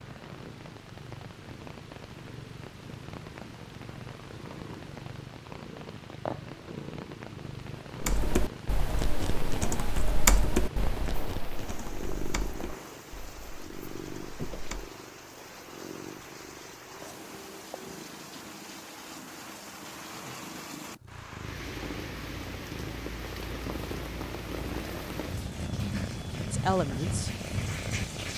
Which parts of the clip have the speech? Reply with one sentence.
You can hear the speech from 26.5 to 27.3 s.